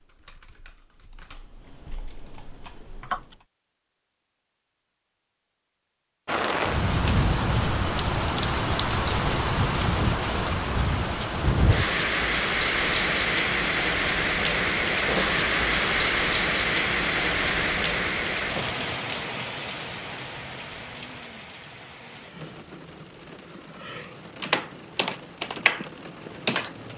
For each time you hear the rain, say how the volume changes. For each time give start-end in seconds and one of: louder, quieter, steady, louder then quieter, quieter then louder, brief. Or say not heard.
6.2-26.9 quieter.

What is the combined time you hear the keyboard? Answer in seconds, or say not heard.
6 s.